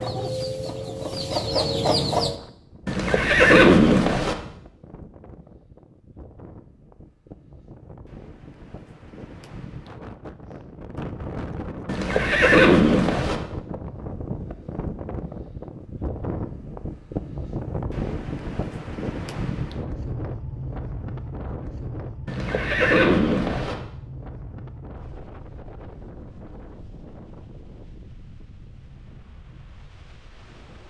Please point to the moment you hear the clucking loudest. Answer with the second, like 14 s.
2 s.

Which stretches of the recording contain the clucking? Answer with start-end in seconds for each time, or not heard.
0.0-2.4.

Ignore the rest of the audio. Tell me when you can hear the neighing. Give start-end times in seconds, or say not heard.
2.9-4.3, 11.8-13.4, 22.2-23.8.